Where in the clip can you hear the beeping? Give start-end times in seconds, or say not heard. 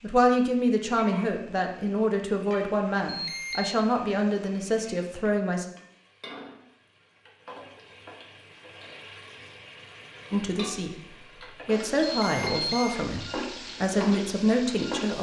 3.0-3.8, 12.1-12.9.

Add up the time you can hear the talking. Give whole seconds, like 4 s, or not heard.
10 s.